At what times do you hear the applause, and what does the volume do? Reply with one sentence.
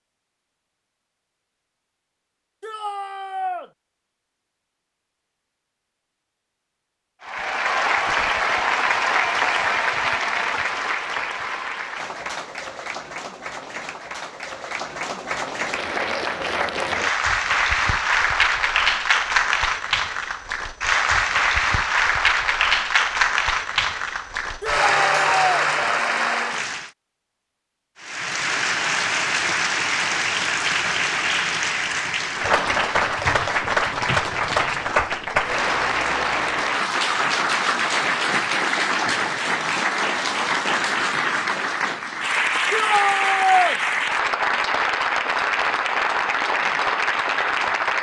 The applause can be heard from 7.2 to 26.9 s, getting quieter then louder; and from 28.0 to 47.9 s, at a steady volume.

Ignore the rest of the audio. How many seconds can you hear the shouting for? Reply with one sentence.
You can hear the shouting for 3 seconds altogether.